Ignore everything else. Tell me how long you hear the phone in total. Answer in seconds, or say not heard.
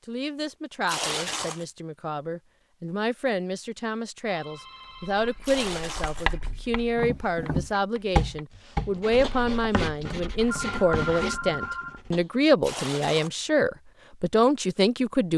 3 s.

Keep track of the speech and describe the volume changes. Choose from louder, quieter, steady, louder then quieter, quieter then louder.
louder.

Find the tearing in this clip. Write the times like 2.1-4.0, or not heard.
0.8-1.6, 5.4-6.3, 12.6-13.3.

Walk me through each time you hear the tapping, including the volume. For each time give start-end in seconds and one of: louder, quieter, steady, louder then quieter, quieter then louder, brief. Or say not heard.
7.0-12.3 quieter.